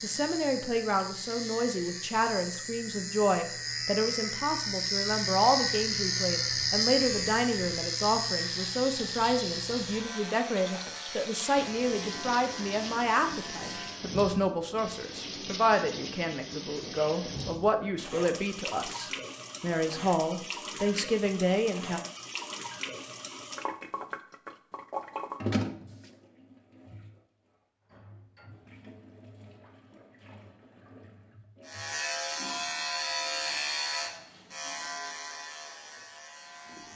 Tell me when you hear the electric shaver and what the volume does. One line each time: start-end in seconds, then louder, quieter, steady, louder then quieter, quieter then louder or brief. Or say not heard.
0.0-14.0 louder then quieter
31.6-36.9 quieter.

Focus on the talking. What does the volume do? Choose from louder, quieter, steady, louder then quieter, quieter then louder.
steady.